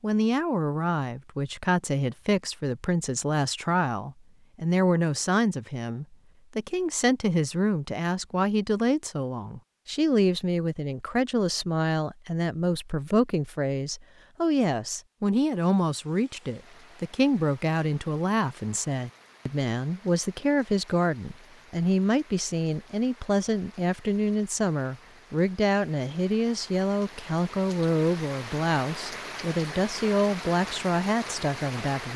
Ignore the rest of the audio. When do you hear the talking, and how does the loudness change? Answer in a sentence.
You can hear the talking from 0.0 to 32.1 s, at a steady volume.